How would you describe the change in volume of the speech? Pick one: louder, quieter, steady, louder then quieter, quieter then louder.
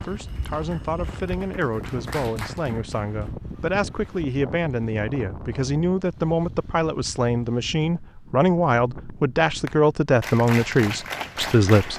louder.